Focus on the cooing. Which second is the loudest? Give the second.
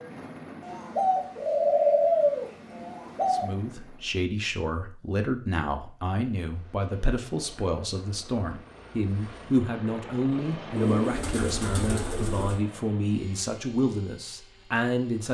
2 s.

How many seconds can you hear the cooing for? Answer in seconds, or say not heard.
5 s.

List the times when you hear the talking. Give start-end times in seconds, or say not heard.
3.3-15.2.